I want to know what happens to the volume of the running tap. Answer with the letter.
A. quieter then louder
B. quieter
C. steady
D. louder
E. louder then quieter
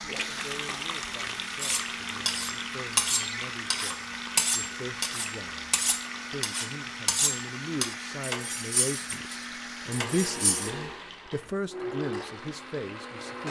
B.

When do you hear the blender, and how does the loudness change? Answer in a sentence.
The blender can be heard from 0.0 to 13.4 s, at a steady volume.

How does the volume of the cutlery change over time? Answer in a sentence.
The loudness of the cutlery goes down.